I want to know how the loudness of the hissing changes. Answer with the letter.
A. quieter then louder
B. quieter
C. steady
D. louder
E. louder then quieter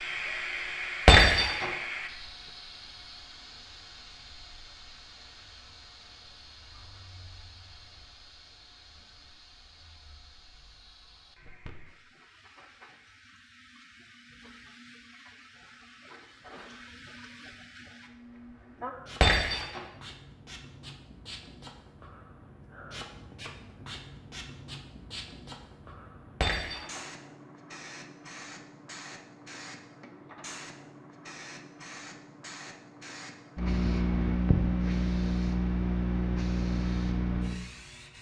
A.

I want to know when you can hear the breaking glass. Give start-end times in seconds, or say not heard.
1.1-1.6, 19.2-19.8, 26.4-27.0.